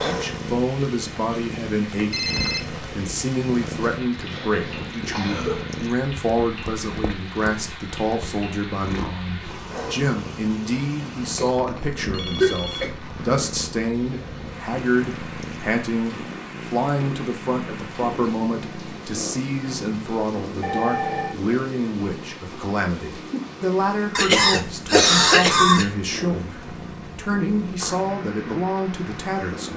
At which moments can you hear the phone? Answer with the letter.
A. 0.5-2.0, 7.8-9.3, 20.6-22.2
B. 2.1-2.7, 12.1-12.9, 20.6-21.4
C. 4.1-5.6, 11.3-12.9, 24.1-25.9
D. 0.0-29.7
B.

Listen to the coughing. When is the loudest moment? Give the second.
25 s.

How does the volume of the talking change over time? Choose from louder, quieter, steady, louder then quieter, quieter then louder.
steady.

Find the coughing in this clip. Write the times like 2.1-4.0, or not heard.
4.1-5.6, 11.3-12.9, 24.1-25.9.